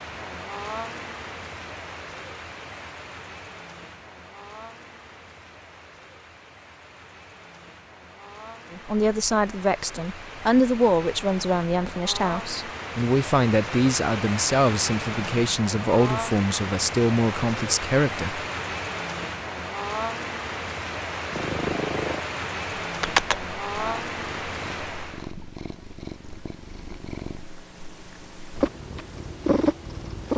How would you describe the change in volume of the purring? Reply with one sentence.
The loudness of the purring goes down, then up.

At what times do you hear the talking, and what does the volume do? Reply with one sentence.
You can hear the talking from 8.7 to 18.4 s, at a steady volume.